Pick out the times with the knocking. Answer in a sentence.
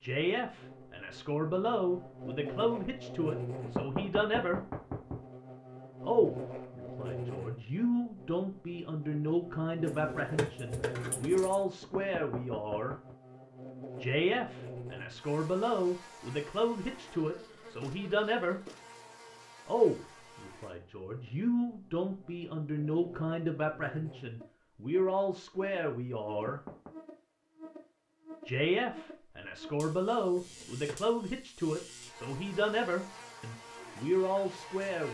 The knocking can be heard from 3.6 to 5.2 s, from 11.8 to 13.2 s and from 26.4 to 26.9 s.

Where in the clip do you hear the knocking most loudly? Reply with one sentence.
The loudest moment of the knocking is at 4 seconds.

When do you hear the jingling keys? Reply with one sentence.
The jingling keys can be heard from 9.8 to 11.6 s and from 30.4 to 31.0 s.